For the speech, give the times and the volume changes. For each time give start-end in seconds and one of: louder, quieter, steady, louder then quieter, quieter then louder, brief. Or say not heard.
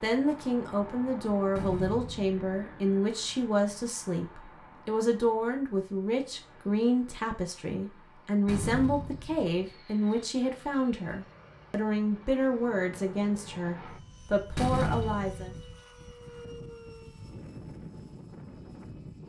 0.0-15.5 steady.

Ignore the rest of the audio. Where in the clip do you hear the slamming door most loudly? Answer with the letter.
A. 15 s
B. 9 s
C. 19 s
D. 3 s
A.